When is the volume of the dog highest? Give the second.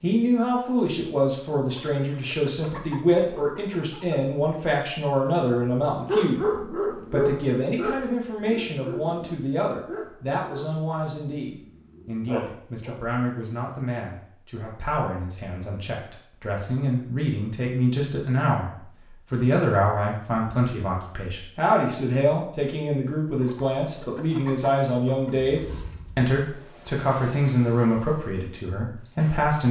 6 s.